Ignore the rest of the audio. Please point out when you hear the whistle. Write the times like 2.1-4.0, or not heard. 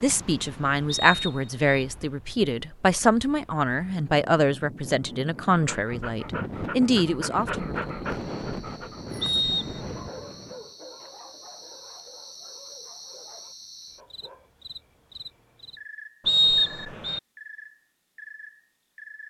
0.8-1.7, 9.2-9.9, 16.2-17.2.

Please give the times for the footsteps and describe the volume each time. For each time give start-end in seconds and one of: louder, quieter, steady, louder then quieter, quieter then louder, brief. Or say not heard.
not heard.